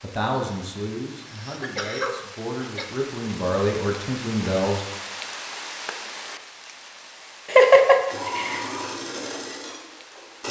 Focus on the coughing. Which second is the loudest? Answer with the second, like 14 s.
8 s.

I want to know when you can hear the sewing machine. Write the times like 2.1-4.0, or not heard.
8.1-10.4.